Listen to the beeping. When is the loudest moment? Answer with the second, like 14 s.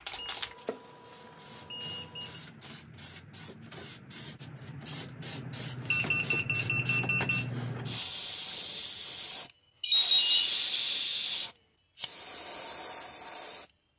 10 s.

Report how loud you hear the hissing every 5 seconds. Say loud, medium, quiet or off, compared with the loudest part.
quiet, loud, loud.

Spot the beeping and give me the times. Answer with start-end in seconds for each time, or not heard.
0.1-2.4, 5.9-7.5, 9.8-10.3.